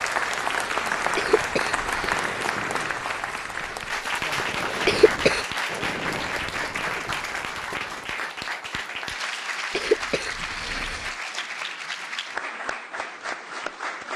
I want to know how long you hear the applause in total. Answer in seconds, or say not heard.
14 s.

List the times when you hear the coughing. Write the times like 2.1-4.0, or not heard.
1.1-2.1, 4.8-5.5, 9.7-11.1.